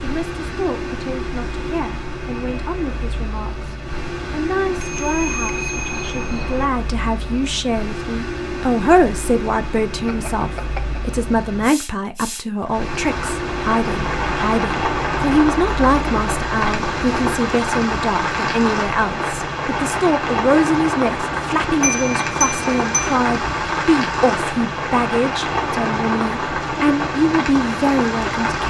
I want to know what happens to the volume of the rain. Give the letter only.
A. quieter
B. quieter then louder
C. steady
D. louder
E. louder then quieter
C.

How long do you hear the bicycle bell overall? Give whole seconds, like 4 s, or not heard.
4 s.